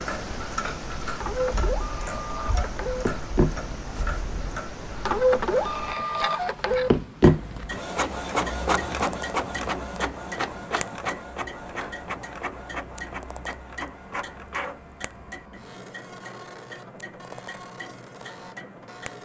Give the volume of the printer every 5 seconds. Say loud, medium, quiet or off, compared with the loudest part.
medium, loud, medium, quiet.